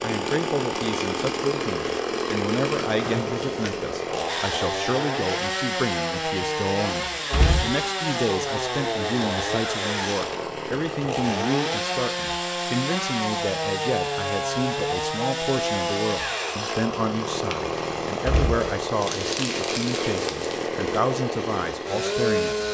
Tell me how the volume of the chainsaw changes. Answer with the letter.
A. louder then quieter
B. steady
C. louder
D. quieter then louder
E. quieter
B.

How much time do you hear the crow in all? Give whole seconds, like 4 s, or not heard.
not heard.